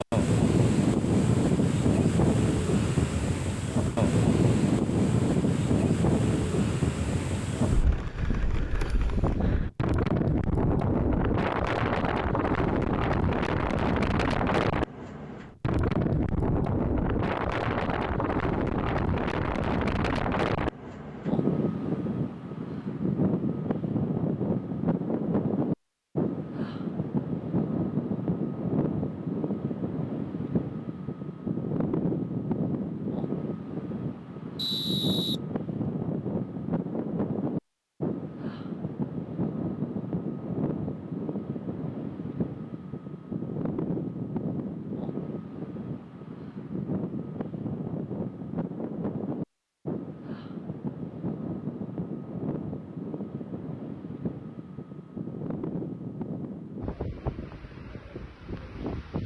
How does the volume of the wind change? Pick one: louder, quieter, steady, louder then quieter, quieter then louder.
quieter.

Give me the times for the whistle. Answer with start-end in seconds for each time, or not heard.
34.5-35.4.